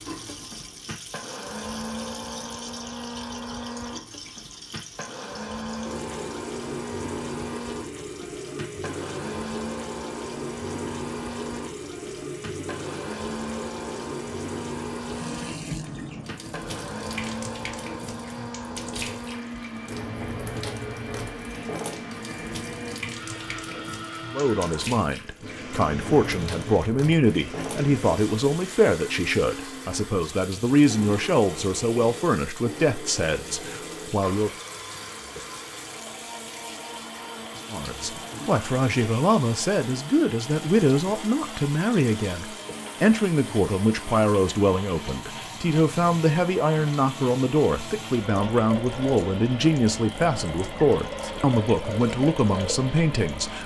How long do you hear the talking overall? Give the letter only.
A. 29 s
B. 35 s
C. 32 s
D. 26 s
D.